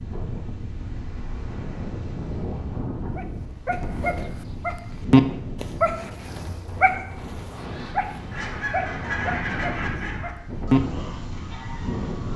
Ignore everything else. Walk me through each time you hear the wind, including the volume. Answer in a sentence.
The wind can be heard from 0.0 to 12.3 s, at a steady volume.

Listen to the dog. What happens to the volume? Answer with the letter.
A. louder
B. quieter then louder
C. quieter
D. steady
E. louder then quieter
E.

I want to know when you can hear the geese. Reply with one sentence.
The geese can be heard from 7.5 to 12.3 s.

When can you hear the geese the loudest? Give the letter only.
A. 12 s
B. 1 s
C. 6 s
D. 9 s
D.